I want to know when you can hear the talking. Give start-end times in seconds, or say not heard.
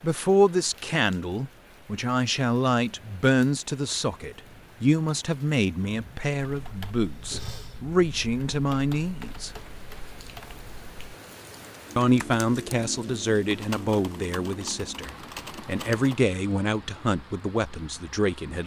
0.0-9.5, 11.9-18.6.